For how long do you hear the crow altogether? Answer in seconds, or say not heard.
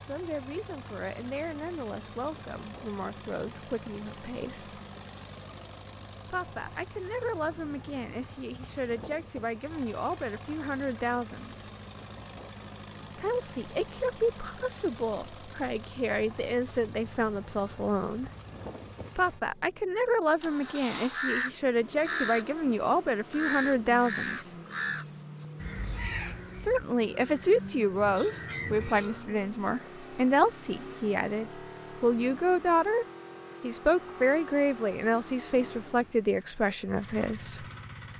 8 s.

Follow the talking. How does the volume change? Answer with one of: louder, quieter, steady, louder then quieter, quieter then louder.
louder.